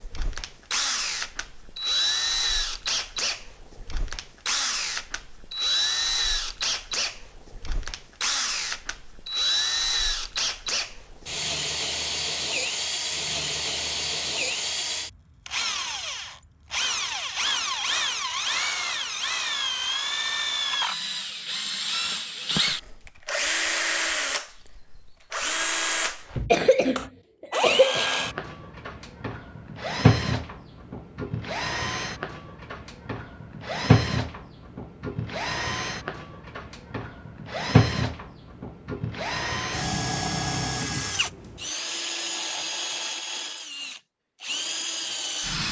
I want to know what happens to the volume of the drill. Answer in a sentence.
The loudness of the drill stays about the same.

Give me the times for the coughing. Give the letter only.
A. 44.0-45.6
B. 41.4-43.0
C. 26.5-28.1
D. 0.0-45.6
C.